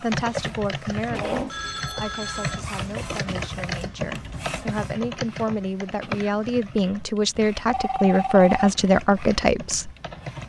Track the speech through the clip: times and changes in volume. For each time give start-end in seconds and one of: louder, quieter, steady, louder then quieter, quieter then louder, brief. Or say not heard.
0.0-9.9 quieter then louder.